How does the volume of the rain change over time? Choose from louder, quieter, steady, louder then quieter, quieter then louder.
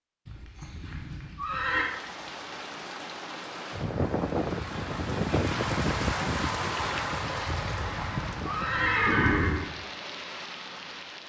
louder then quieter.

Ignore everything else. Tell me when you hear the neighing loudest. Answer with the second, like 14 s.
9 s.